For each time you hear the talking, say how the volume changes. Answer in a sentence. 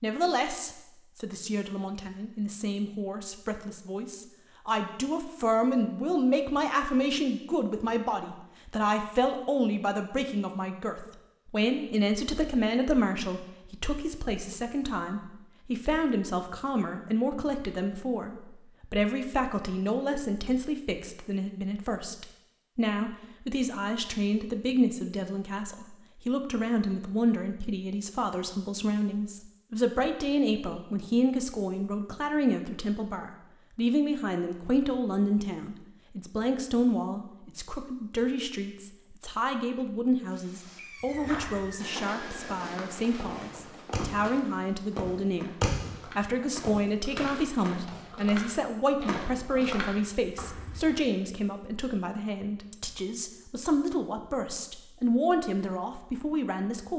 The talking can be heard from 0.0 to 45.5 s, at a steady volume; and from 46.1 to 56.9 s, at a steady volume.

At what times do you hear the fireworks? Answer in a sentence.
You can hear the fireworks from 40.2 to 48.1 s.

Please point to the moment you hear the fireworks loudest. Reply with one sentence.
The loudest moment of the fireworks is at 46 seconds.